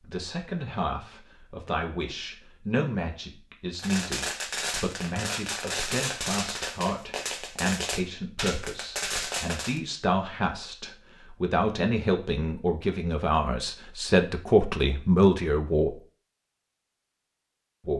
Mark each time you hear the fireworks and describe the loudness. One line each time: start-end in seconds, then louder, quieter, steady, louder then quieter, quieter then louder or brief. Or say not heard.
3.8-9.8 steady.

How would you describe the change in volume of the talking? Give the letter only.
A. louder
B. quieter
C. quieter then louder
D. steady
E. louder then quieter
A.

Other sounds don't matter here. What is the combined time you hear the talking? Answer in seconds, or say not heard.
16 s.